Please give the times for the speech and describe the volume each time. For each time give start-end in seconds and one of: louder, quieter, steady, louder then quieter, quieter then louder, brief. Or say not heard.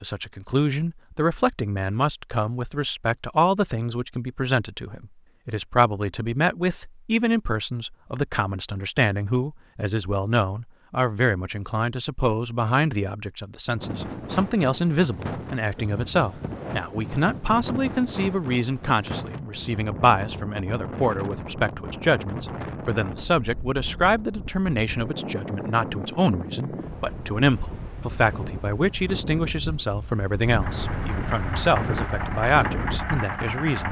0.0-33.8 steady.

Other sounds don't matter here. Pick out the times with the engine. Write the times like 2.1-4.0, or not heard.
30.6-33.8.